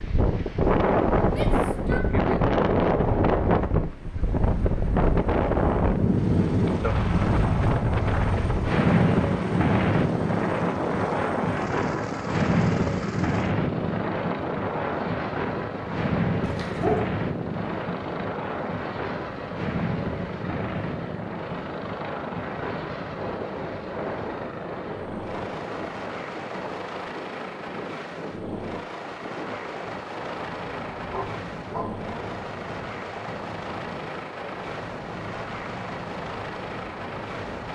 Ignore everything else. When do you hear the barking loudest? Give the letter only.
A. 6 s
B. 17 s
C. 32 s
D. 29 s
B.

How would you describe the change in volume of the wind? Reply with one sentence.
The loudness of the wind goes down.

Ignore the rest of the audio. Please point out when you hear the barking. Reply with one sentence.
The barking can be heard from 16.4 to 17.1 s and from 31.1 to 31.9 s.